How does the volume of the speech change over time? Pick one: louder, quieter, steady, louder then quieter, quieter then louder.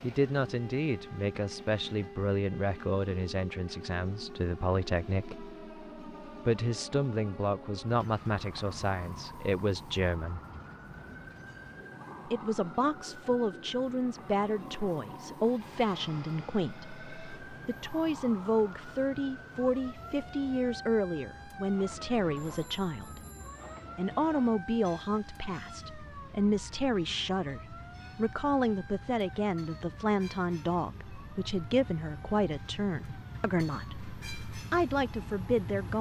steady.